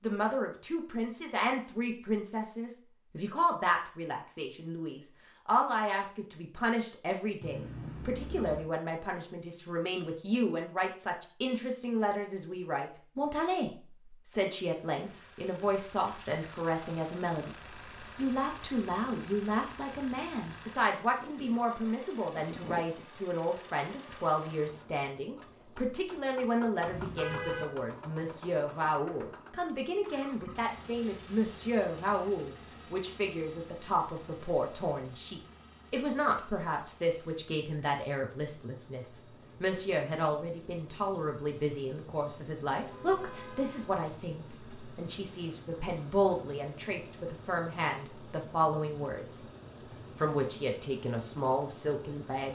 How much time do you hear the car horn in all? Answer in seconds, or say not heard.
3 s.